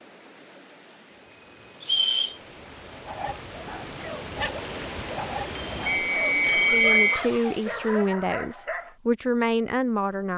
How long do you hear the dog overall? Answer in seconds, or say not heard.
6 s.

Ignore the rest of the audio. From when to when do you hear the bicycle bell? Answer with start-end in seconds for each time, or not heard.
1.1-2.1, 5.5-7.2.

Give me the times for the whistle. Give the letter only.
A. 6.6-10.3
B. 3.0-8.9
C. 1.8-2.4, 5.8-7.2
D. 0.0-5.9
C.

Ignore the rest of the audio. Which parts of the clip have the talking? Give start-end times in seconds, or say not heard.
6.6-10.3.